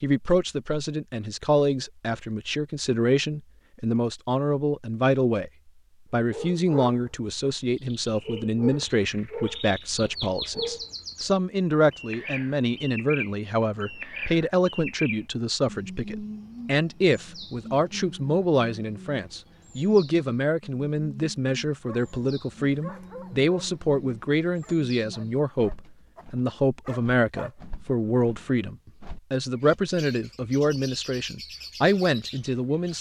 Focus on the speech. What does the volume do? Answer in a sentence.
The volume of the speech stays about the same.